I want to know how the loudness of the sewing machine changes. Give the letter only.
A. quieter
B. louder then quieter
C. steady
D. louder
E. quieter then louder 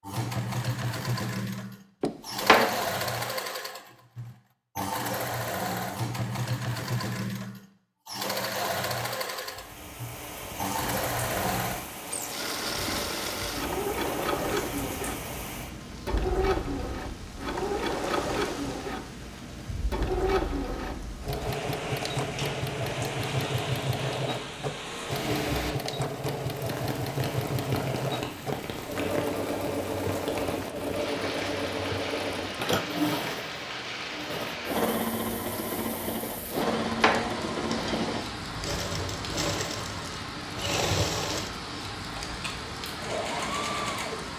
C.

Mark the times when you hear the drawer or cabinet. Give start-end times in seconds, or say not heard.
2.0-2.8, 36.5-38.2.